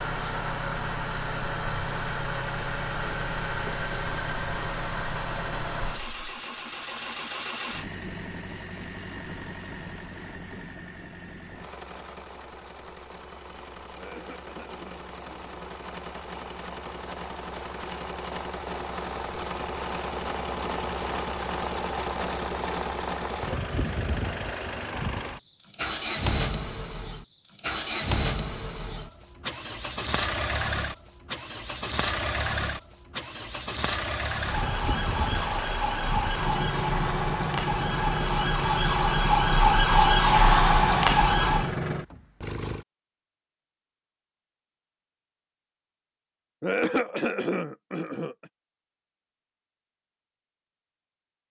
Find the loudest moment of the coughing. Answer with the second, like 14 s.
47 s.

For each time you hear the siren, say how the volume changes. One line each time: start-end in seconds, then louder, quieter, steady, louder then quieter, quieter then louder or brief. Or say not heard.
34.4-41.8 louder.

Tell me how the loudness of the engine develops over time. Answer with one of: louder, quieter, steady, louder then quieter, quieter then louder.
quieter then louder.